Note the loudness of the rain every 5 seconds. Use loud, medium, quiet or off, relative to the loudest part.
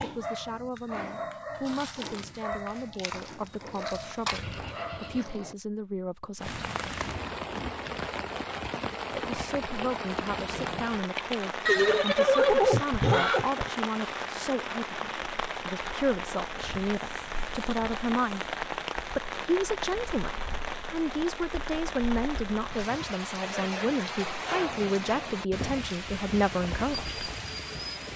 off, loud, loud, loud, loud, loud.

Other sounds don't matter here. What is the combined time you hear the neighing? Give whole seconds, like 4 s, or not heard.
4 s.